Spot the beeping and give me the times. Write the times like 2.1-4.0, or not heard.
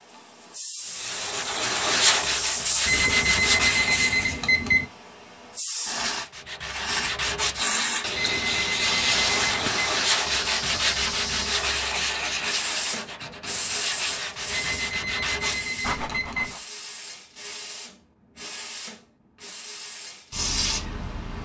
2.9-4.8, 8.2-9.9, 14.5-16.5.